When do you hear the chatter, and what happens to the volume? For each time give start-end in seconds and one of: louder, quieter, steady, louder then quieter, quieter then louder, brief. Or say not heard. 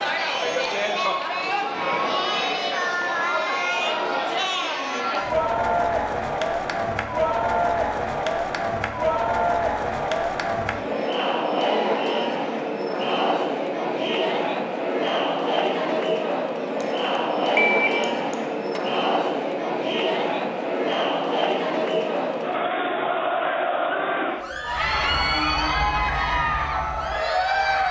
0.0-27.8 steady.